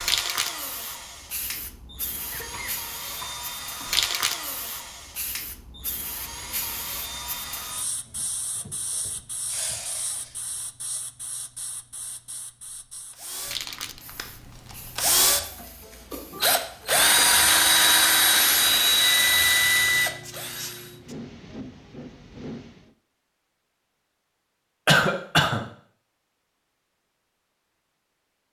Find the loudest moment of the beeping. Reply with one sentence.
The loudest moment of the beeping is at 20 seconds.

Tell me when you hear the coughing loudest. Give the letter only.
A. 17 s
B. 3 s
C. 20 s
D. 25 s
D.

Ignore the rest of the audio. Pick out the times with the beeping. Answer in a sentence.
The beeping can be heard from 18.6 to 20.1 s.